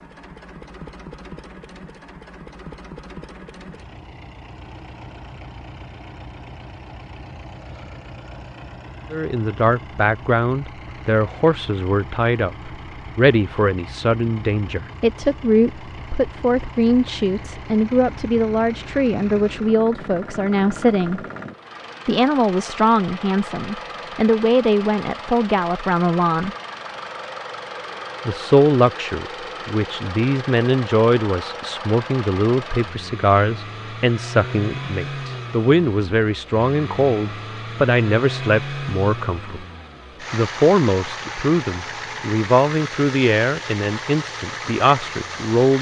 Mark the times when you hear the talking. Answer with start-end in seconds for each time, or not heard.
9.1-21.2, 22.1-26.6, 28.2-39.6, 40.3-45.7.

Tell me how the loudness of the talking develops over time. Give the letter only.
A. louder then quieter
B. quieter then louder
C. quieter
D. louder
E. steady
E.